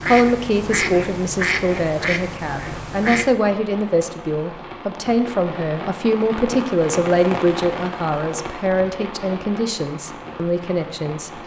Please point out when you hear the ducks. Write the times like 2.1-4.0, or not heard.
0.0-3.4.